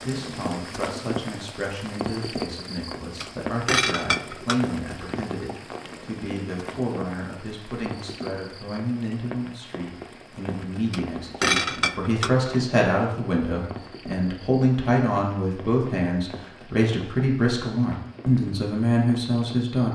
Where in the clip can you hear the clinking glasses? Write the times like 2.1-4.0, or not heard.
3.2-4.6, 10.9-12.6.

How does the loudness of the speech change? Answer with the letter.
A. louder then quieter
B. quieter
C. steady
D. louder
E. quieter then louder
D.